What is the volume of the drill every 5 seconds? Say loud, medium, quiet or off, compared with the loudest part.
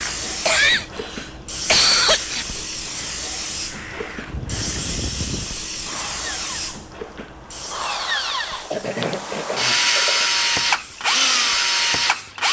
quiet, medium, loud.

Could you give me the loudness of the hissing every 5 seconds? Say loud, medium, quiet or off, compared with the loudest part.
loud, loud, quiet.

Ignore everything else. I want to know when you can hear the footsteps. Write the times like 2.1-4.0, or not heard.
not heard.